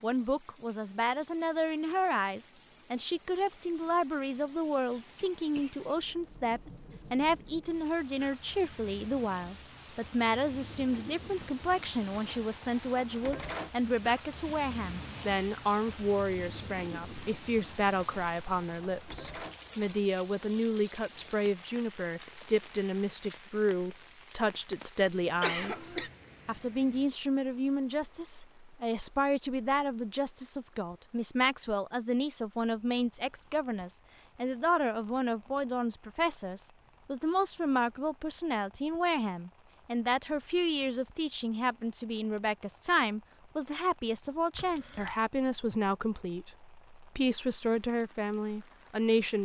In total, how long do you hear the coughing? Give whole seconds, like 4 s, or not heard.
2 s.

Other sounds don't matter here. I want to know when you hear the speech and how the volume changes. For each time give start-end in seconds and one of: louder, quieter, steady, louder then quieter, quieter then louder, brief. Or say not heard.
0.0-49.3 steady.